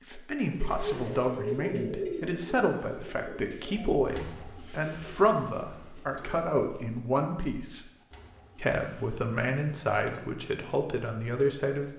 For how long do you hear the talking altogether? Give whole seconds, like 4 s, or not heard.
11 s.